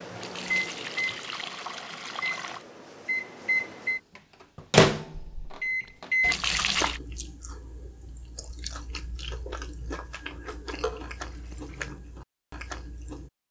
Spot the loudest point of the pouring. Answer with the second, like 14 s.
7 s.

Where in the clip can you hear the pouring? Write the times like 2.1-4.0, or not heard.
0.1-2.6, 6.2-7.0, 10.8-11.9.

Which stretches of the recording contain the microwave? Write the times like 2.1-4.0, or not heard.
0.0-6.3.